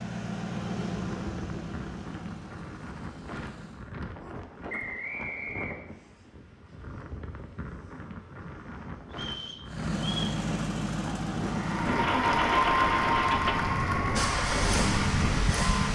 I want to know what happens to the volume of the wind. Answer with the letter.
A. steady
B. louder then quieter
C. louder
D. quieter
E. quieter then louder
C.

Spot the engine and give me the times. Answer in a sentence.
You can hear the engine from 0.0 to 4.0 s and from 9.7 to 15.8 s.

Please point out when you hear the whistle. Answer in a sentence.
You can hear the whistle from 4.7 to 6.0 s and from 9.1 to 10.4 s.